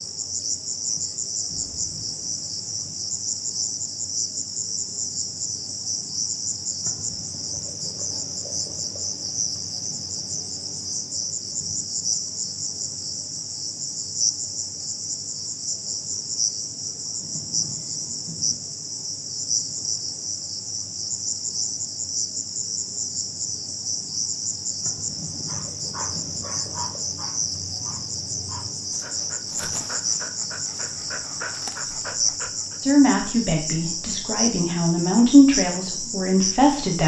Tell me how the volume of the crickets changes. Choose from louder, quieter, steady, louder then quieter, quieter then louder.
steady.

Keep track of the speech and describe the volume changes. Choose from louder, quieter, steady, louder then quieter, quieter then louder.
louder then quieter.